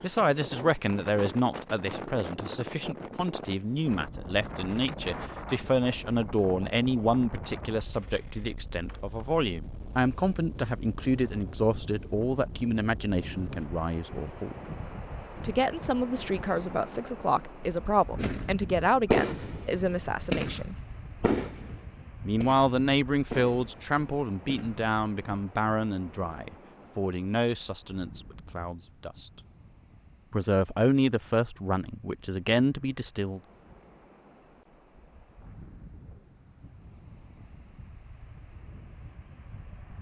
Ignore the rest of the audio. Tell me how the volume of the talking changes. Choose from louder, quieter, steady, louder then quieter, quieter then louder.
steady.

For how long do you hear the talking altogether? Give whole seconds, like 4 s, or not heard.
30 s.